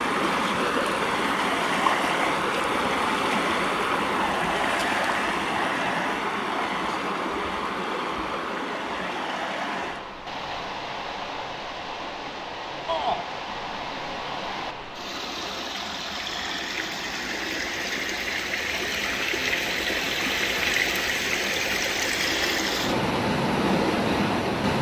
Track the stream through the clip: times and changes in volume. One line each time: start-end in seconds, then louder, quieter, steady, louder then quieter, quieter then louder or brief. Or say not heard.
0.0-24.7 quieter then louder.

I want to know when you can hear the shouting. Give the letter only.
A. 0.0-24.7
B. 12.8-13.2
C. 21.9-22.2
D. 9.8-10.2
B.